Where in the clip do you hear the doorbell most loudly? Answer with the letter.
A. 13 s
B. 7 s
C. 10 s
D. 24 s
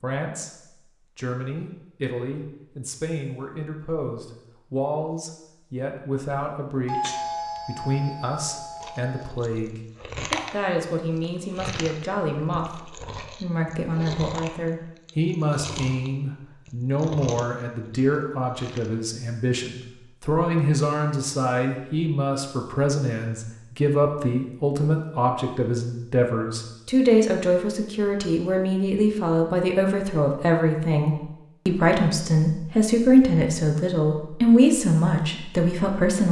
B.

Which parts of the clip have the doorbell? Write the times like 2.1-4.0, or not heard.
6.8-9.3.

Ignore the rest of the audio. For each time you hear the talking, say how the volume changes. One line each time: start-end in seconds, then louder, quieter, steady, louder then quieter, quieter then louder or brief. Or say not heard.
0.0-36.2 louder.